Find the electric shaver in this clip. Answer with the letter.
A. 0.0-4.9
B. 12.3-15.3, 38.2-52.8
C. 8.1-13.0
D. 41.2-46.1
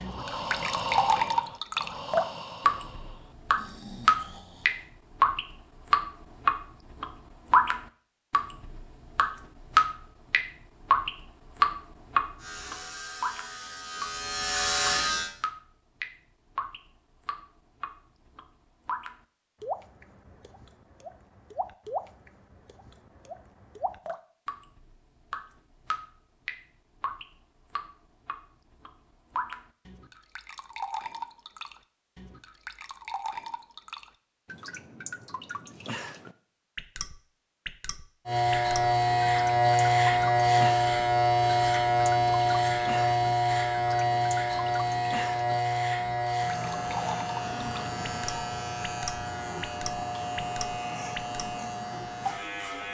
B.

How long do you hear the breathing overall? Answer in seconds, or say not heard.
5 s.